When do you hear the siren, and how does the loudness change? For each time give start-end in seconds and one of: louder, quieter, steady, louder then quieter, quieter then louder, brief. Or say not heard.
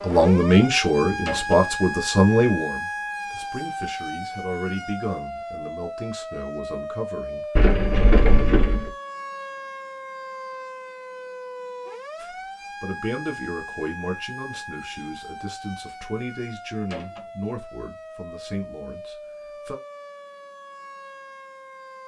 0.0-22.0 quieter.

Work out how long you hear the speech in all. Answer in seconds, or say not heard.
15 s.